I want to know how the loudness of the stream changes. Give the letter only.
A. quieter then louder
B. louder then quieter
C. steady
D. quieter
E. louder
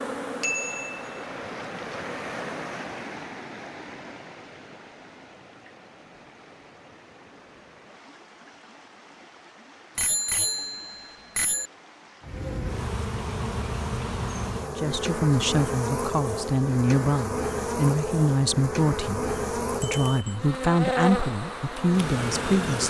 D.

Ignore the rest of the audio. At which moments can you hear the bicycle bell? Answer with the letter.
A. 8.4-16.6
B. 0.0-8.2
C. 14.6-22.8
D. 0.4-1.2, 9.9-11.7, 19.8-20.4
D.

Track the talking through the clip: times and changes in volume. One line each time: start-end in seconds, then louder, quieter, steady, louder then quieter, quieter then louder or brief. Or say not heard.
14.6-22.8 steady.